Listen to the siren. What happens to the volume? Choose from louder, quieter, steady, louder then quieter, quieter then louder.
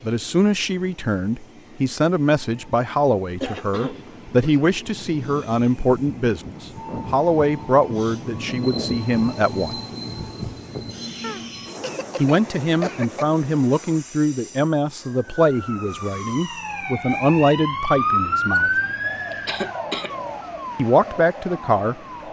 louder then quieter.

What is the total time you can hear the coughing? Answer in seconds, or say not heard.
4 s.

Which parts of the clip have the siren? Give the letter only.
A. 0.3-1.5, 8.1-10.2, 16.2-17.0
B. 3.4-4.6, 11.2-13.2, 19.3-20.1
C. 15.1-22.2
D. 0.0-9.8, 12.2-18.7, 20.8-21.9
C.